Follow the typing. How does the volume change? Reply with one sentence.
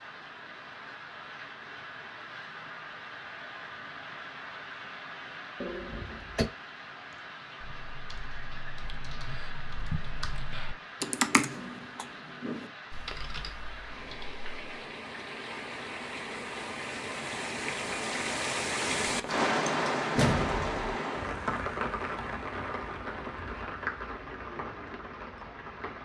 The loudness of the typing goes up, then down.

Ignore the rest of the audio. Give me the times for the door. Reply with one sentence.
You can hear the door from 5.6 to 6.5 s and from 20.1 to 20.8 s.